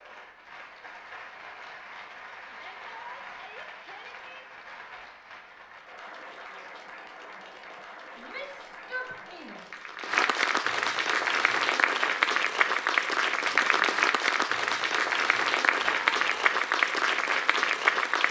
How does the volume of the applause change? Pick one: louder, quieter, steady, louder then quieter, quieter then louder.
louder.